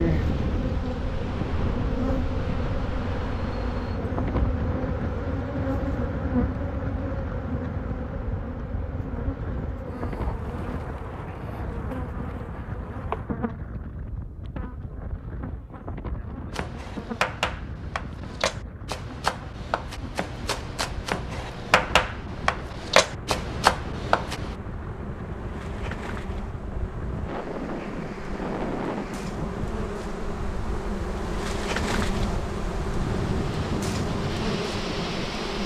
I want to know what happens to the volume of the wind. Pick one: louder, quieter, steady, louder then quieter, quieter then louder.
quieter then louder.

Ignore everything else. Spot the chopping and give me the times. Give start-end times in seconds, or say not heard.
16.5-24.6.